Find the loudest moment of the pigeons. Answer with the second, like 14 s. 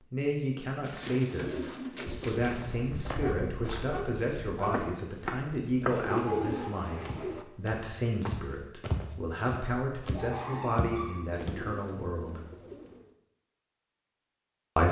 6 s.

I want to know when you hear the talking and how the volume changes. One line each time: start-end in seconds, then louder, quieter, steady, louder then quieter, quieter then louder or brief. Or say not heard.
0.1-12.4 steady.